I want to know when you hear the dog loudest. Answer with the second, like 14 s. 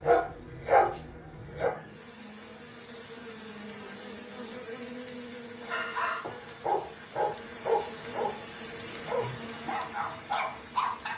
1 s.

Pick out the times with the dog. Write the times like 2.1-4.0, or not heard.
0.0-1.7, 5.7-8.4, 9.1-11.1.